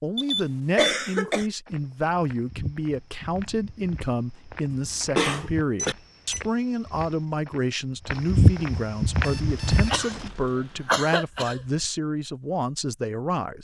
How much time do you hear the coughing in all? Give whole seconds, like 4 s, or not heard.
4 s.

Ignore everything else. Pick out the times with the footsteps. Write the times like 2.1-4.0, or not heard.
1.6-10.3.